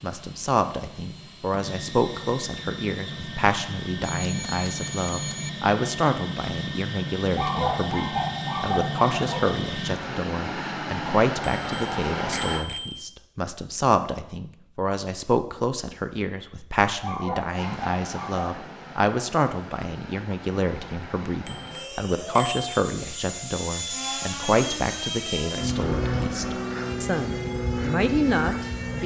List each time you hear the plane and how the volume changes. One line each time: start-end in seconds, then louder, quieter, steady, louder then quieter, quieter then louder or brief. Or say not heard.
0.0-12.7 louder
17.5-29.0 louder.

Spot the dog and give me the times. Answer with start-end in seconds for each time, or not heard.
7.3-9.6, 17.0-18.5.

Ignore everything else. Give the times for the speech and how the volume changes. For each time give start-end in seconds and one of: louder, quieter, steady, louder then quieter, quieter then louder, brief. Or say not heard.
0.0-29.0 steady.